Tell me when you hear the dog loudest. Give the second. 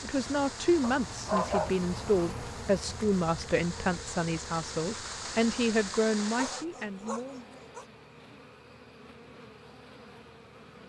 1 s.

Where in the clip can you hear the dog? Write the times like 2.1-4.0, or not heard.
0.8-2.5, 6.2-7.8.